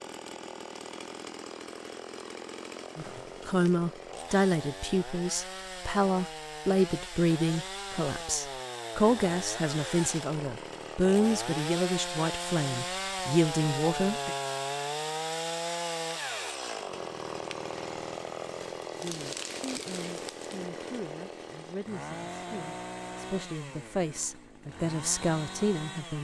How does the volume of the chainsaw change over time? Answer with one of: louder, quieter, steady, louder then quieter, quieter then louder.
louder then quieter.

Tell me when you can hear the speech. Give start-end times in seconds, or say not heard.
3.0-14.3, 19.0-26.2.